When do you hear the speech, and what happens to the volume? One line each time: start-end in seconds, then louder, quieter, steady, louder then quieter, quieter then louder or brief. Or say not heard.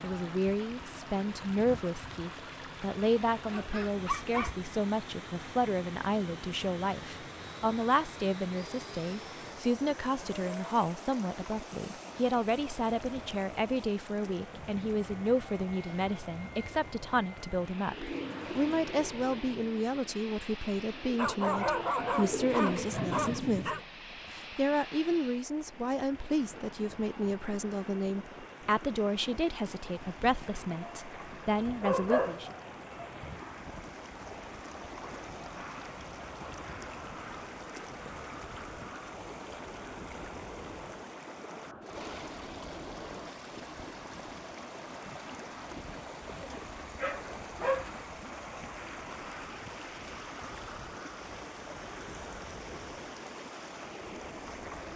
0.0-32.5 steady.